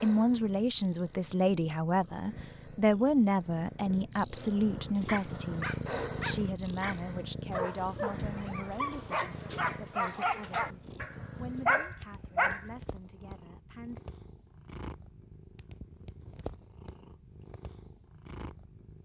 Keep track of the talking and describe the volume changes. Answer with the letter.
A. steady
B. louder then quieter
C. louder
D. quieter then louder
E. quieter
E.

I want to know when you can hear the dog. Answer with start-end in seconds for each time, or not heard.
5.0-12.7.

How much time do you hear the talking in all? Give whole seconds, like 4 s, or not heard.
14 s.